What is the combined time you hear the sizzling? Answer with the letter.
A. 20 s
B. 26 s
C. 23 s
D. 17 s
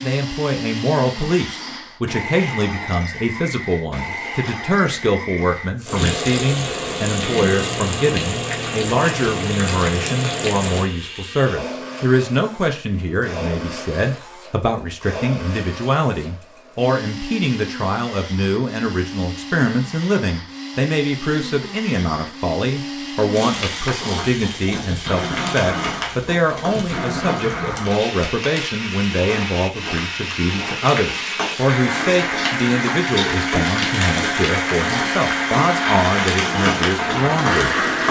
A.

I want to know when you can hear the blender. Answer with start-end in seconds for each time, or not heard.
0.0-38.0.